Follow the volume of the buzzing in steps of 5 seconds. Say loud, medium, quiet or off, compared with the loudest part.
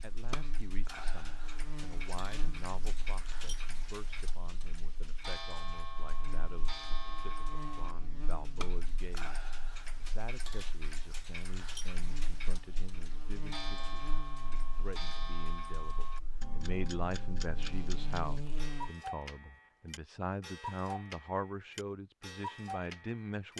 medium, medium, medium, loud, off.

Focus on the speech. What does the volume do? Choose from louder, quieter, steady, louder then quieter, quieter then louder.
louder.